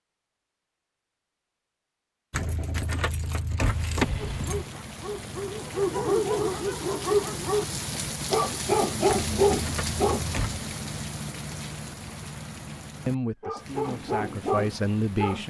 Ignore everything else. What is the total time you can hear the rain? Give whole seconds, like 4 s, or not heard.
12 s.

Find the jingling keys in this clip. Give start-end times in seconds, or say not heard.
2.3-4.7, 9.1-10.6.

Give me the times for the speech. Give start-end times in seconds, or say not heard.
13.1-15.4.